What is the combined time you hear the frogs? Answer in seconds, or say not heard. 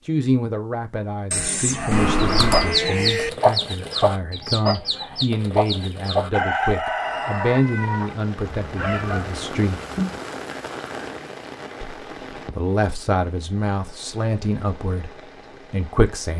not heard.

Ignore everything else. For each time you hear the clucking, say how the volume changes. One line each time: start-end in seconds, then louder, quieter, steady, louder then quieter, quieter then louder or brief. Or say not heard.
2.1-9.2 quieter.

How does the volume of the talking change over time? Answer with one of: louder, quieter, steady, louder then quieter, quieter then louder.
steady.